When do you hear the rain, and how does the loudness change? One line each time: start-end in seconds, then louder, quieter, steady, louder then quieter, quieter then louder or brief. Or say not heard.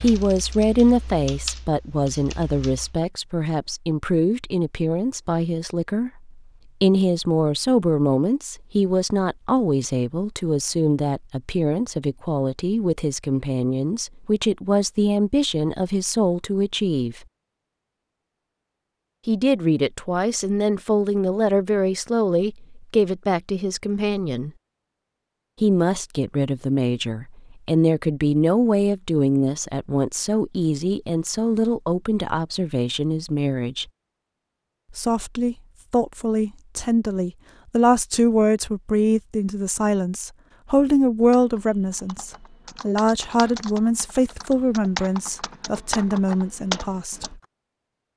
not heard.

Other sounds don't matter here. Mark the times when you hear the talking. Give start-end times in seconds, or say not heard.
0.0-17.2, 19.2-24.5, 25.6-33.9, 34.9-47.4.